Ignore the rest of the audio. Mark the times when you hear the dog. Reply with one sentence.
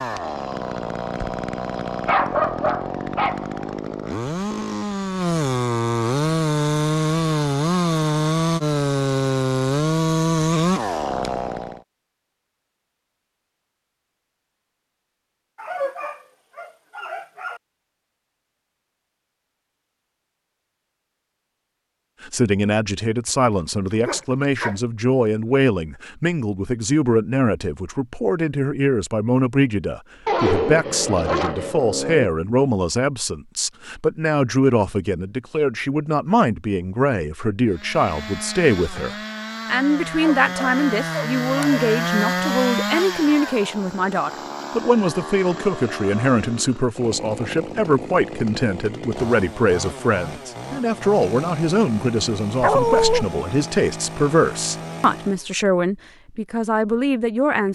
You can hear the dog from 2.0 to 3.5 s, from 15.6 to 17.6 s, from 23.2 to 24.8 s, from 30.2 to 32.3 s, from 40.2 to 41.8 s and from 52.6 to 53.2 s.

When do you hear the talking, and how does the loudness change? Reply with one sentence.
You can hear the talking from 22.2 to 57.6 s, at a steady volume.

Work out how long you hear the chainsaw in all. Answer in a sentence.
The chainsaw can be heard for 30 seconds in total.